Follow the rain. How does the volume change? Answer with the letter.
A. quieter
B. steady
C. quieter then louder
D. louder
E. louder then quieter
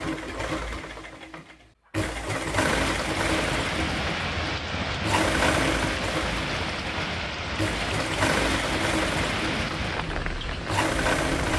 B.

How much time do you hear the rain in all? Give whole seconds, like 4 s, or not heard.
9 s.